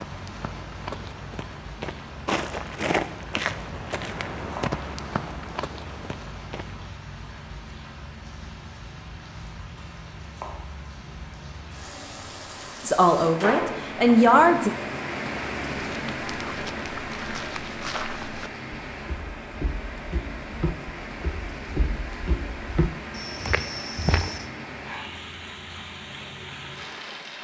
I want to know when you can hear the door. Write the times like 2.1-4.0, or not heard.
13.2-14.2.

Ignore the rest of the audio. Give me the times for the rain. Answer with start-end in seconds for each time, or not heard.
0.0-27.4.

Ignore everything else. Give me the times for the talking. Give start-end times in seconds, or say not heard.
12.8-14.7.